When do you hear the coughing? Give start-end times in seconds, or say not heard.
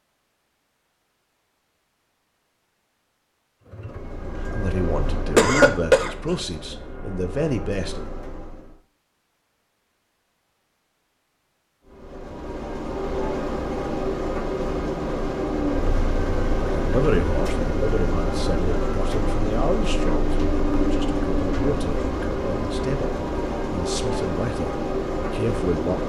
5.3-6.1.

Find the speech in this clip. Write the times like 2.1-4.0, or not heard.
4.4-8.0, 16.6-26.0.